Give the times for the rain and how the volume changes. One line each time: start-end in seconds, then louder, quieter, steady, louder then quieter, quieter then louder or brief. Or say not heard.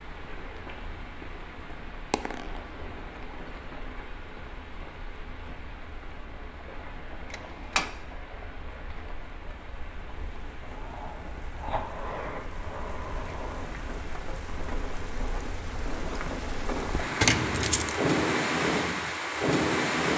0.0-20.1 louder.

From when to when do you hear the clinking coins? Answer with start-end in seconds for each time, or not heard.
2.1-3.8, 7.3-8.0, 17.2-18.0.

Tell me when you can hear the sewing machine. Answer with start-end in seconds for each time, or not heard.
not heard.